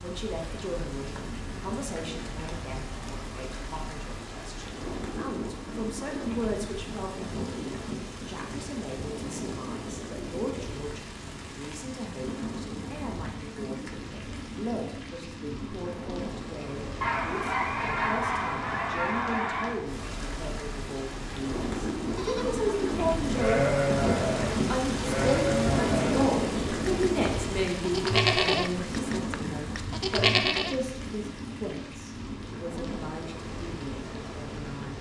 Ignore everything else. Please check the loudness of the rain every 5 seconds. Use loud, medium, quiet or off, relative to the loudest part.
medium, medium, medium, medium, loud, loud, medium.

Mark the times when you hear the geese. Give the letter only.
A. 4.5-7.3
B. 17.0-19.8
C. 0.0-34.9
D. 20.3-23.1
B.